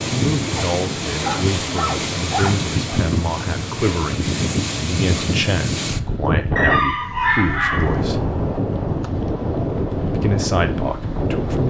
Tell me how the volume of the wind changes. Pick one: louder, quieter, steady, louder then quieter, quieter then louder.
steady.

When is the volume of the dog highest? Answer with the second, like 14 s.
7 s.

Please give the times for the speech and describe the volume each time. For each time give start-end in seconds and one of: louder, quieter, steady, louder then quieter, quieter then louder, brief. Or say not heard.
0.1-8.2 steady
10.1-11.6 brief.